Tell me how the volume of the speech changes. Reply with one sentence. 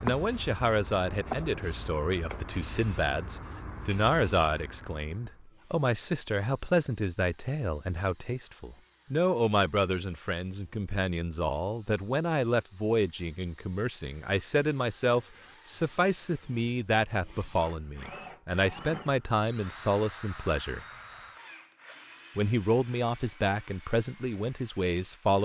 The loudness of the speech stays about the same.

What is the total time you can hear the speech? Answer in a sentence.
The speech can be heard for 24 seconds in total.